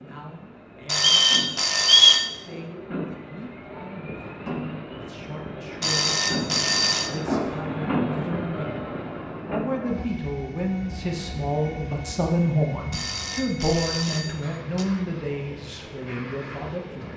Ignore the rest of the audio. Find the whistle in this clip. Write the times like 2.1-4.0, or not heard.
0.9-2.2.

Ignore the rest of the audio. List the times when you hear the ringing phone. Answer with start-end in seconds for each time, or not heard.
0.8-2.2, 5.8-7.1, 12.9-14.8.